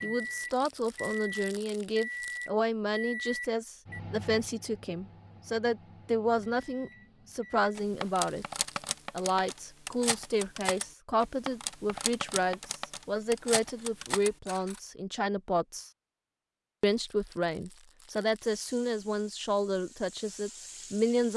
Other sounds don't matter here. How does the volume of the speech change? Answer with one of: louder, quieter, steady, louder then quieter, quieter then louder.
steady.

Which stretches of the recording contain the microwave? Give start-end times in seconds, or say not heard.
0.0-7.7.